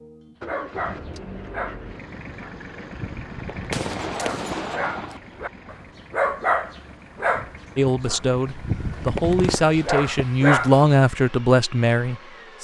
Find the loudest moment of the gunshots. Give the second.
4 s.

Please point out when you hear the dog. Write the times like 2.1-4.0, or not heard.
0.4-10.9.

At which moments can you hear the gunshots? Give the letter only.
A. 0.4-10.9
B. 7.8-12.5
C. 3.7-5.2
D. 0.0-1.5
C.